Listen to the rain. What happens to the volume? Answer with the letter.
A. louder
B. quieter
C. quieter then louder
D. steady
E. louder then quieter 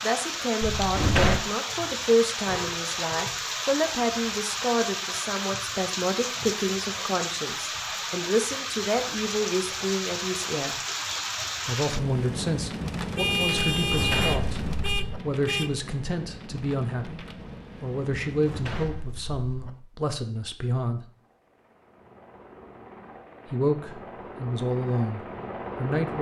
B.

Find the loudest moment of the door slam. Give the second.
1 s.